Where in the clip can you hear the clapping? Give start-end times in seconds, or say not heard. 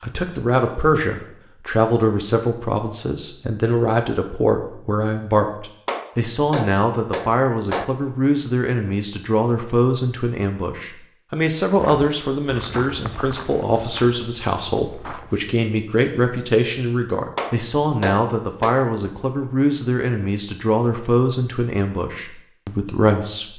5.8-7.8, 17.4-18.9.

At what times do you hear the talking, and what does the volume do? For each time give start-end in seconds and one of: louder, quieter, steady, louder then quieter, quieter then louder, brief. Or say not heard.
0.0-23.5 steady.